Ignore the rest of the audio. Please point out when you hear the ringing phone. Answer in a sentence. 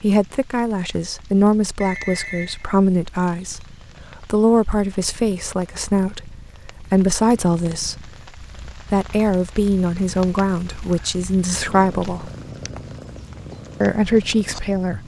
You can hear the ringing phone from 1.8 to 2.7 s.